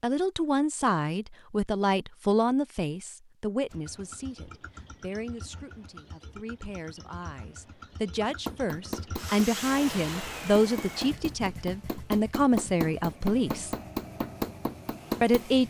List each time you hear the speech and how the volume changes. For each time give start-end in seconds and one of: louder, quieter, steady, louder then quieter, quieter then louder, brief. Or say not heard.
0.0-13.7 quieter then louder
15.2-15.6 brief.